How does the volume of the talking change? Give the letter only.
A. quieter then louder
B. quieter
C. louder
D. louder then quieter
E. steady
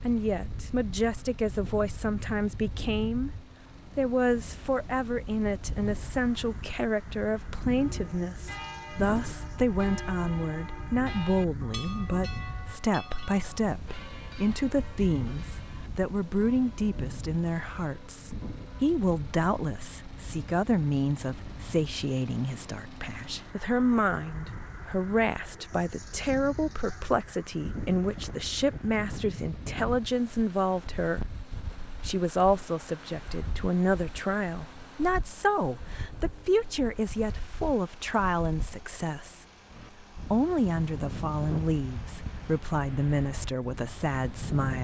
E.